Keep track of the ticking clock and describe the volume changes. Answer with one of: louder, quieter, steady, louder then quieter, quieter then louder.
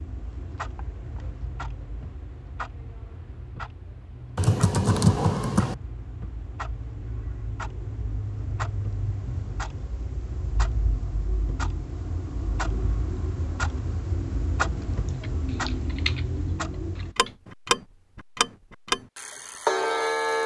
louder.